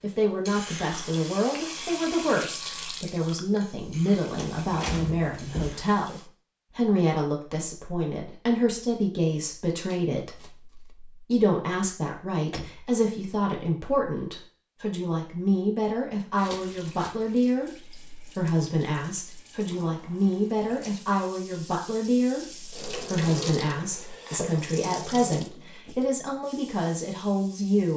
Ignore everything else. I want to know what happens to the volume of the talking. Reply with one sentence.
The volume of the talking stays about the same.